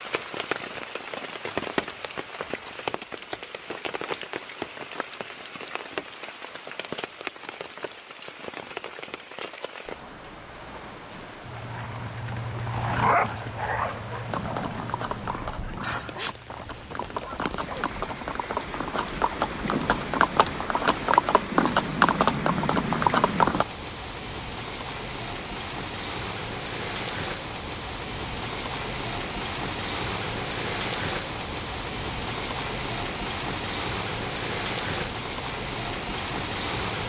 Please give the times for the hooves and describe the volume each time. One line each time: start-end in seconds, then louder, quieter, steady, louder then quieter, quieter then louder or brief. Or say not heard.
14.2-23.6 louder.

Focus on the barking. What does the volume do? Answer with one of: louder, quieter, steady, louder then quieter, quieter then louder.
louder then quieter.